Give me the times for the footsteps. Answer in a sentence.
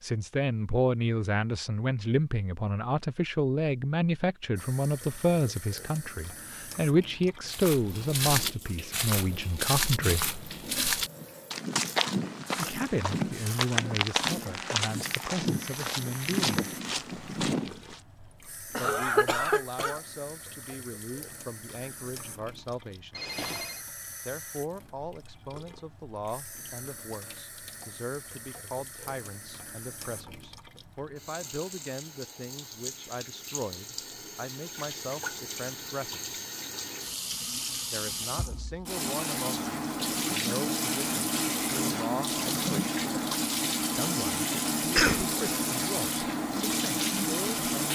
You can hear the footsteps from 7.5 to 18.0 s.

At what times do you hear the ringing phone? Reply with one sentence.
The ringing phone can be heard from 23.1 to 23.9 s.